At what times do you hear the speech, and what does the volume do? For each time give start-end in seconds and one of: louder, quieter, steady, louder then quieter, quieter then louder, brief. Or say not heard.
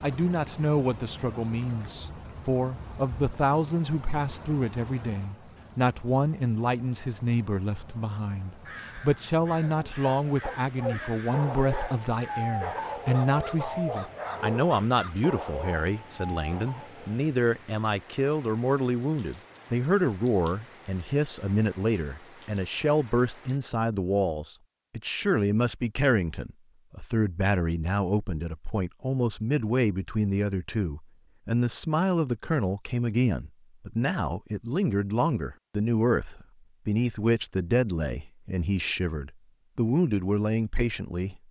0.0-41.4 steady.